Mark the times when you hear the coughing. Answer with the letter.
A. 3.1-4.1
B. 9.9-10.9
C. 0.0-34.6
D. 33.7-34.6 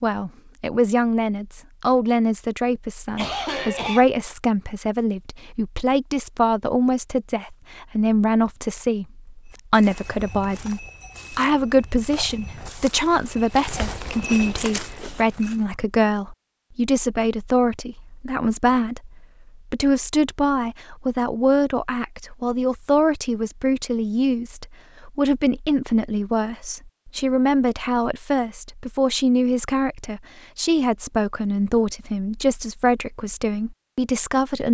A.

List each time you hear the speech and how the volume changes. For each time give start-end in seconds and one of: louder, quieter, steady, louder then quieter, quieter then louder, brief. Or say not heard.
0.0-34.6 steady.